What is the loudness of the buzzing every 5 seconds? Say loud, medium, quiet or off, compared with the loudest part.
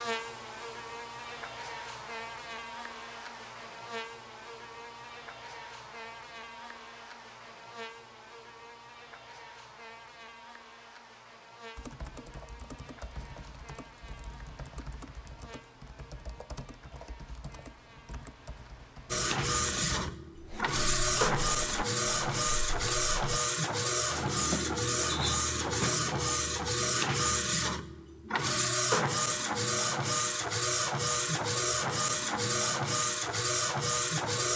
loud, medium, medium, quiet, off, off, off.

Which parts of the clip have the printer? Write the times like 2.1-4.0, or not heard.
19.1-34.5.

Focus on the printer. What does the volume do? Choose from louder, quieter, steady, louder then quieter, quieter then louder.
steady.